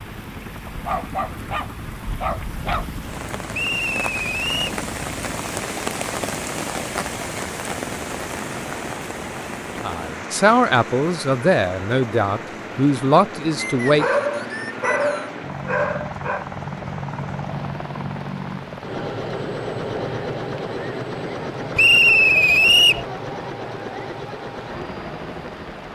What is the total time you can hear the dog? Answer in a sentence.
You can hear the dog for 5 seconds altogether.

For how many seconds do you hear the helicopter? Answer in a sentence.
You can hear the helicopter for 26 seconds altogether.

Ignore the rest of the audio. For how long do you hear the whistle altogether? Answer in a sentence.
You can hear the whistle for 4 seconds altogether.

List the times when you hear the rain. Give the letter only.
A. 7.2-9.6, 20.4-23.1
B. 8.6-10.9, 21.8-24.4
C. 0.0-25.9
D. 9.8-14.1
C.